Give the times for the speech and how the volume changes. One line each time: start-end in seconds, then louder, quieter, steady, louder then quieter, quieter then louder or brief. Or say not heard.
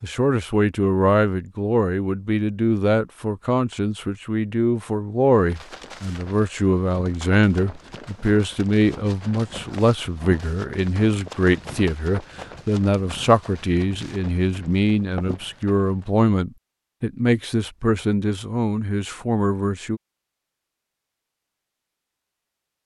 0.0-20.0 steady.